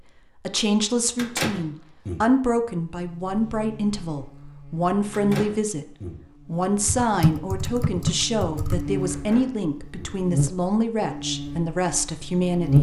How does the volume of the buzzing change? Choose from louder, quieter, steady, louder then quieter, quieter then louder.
louder then quieter.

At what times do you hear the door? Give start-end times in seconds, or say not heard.
1.1-2.2, 5.1-6.2, 9.1-10.2.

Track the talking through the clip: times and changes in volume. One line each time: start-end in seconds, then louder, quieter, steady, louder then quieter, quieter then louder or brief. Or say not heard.
0.5-12.7 steady.